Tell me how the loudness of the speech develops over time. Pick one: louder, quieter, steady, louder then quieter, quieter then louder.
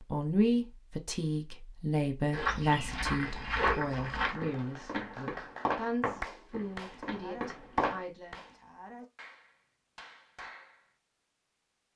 quieter.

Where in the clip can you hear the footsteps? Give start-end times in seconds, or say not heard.
2.3-8.0.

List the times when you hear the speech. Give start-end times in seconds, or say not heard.
0.1-8.4.